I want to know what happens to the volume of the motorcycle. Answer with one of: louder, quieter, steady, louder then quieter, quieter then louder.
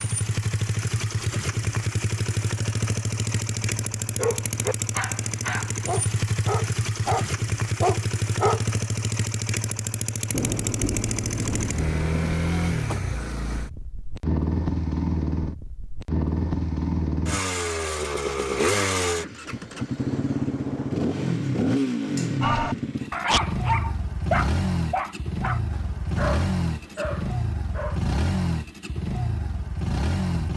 steady.